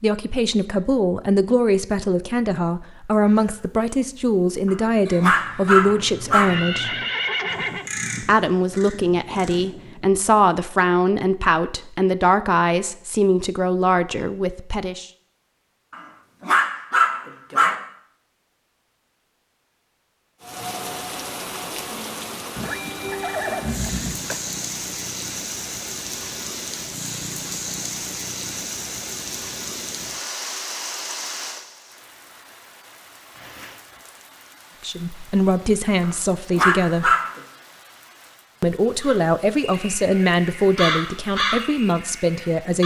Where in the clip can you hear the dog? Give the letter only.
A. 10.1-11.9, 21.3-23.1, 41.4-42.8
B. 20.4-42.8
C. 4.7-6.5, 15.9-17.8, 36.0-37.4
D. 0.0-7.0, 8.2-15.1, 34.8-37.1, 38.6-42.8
C.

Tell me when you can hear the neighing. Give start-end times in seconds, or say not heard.
6.5-7.9, 22.6-24.4, 33.4-34.1.